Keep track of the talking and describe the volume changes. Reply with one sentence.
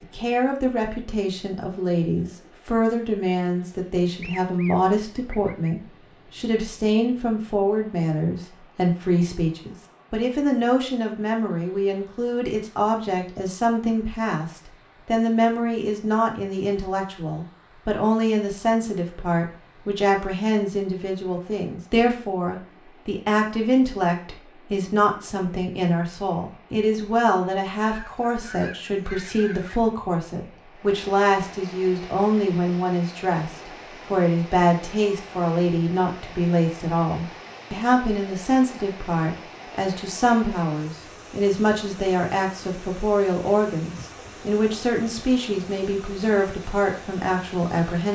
The volume of the talking stays about the same.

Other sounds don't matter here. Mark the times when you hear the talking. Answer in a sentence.
The talking can be heard from 0.0 to 48.1 s.